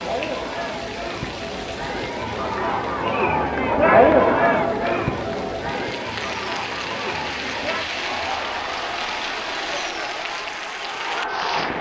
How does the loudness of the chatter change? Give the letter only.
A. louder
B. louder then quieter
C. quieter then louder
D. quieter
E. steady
B.